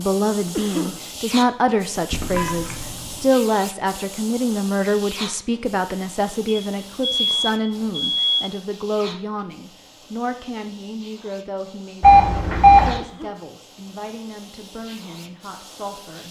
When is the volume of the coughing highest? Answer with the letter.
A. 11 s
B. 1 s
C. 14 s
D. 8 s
B.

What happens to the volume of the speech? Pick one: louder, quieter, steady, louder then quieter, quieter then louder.
quieter.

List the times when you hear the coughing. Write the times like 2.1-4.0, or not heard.
0.6-1.1, 12.9-13.5.